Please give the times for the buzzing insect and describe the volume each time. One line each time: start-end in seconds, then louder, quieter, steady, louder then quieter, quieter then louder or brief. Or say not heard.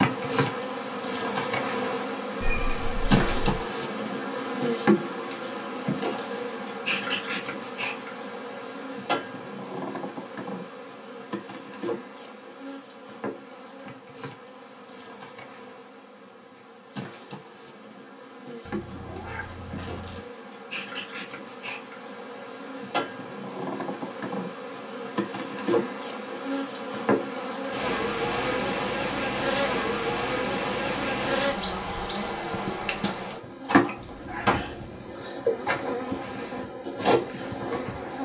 0.0-38.2 quieter then louder.